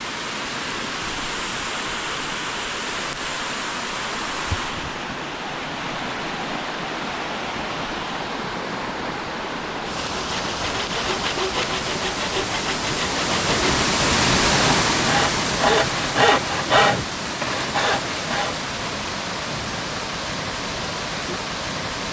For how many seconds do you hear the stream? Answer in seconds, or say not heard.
22 s.